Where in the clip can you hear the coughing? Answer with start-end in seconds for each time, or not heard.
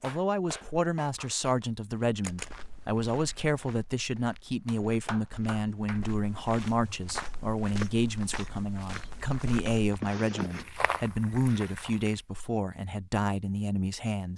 9.7-10.7.